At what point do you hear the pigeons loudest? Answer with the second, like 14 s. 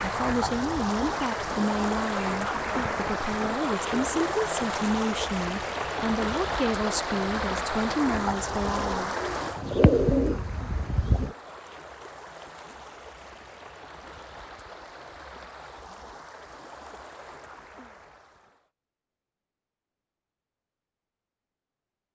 10 s.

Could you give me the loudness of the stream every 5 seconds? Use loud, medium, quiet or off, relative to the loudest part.
loud, loud, quiet, quiet, off.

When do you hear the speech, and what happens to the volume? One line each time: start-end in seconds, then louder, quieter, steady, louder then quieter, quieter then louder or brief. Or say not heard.
0.0-9.2 steady.